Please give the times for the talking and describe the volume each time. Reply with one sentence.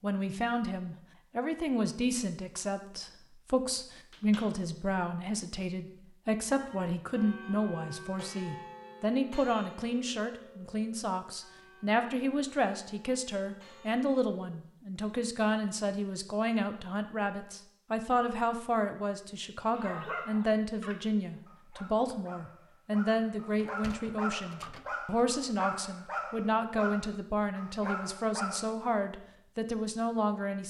You can hear the talking from 0.0 to 30.6 s, at a steady volume.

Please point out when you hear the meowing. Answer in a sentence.
You can't hear the meowing here.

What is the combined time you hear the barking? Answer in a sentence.
The barking can be heard for 9 seconds in total.